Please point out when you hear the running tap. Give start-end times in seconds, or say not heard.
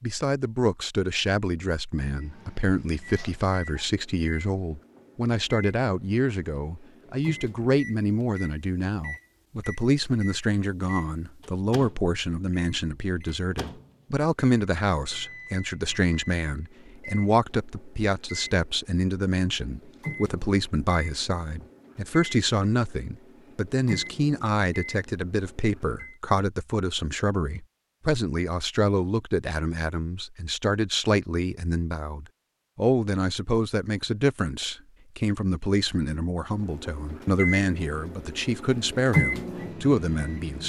not heard.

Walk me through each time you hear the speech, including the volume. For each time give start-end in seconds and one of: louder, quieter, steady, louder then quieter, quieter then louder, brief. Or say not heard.
0.0-40.6 steady.